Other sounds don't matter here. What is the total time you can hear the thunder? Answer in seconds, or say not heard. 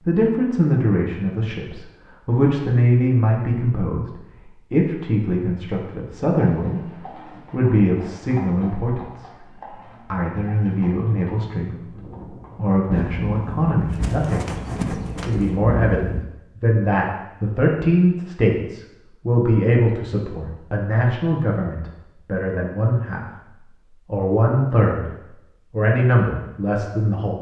3 s.